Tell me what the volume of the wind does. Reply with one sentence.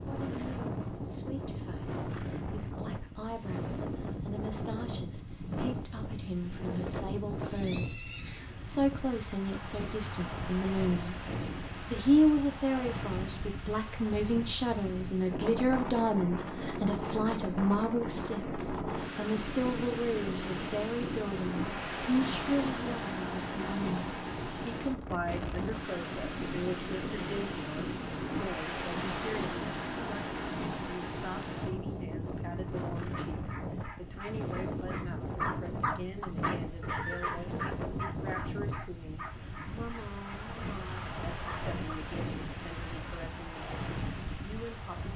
The volume of the wind stays about the same.